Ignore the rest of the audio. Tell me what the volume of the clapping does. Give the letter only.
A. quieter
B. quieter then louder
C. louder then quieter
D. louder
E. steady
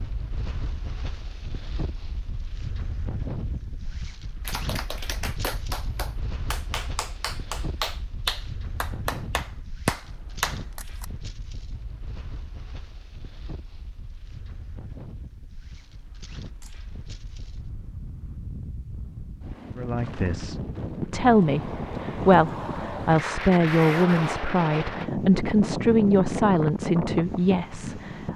D.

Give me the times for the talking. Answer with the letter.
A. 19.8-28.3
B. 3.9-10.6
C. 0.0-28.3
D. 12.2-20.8
A.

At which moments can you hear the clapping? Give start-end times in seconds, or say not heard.
3.9-10.6.